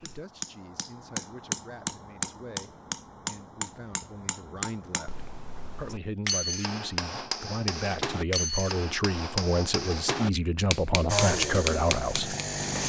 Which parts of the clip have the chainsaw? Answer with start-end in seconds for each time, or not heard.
11.1-12.8.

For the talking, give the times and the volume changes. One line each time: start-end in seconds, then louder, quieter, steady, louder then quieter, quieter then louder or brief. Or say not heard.
0.0-12.3 louder.